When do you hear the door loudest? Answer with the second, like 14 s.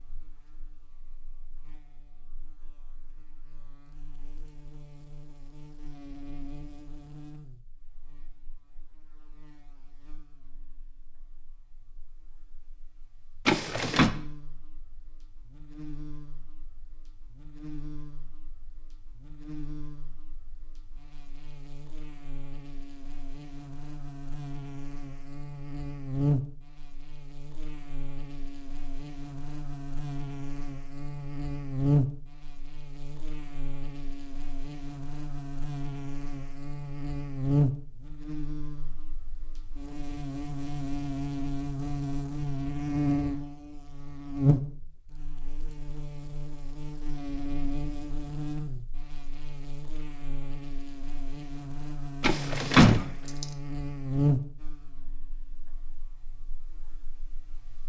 53 s.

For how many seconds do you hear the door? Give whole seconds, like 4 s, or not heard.
2 s.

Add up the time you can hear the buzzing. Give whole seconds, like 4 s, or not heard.
58 s.